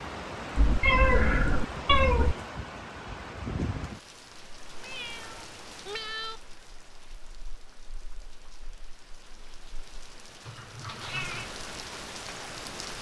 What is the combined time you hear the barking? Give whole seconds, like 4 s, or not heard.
not heard.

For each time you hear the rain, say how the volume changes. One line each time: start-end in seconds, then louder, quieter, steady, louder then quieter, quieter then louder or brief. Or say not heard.
0.0-12.9 quieter then louder.